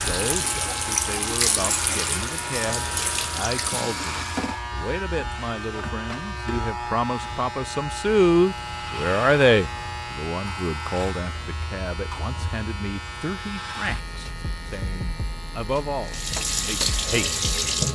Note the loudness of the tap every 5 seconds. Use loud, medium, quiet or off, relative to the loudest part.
loud, off, off, loud.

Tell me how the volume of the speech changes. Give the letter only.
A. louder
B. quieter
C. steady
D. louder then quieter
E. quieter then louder
D.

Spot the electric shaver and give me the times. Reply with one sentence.
The electric shaver can be heard from 0.0 to 17.9 s.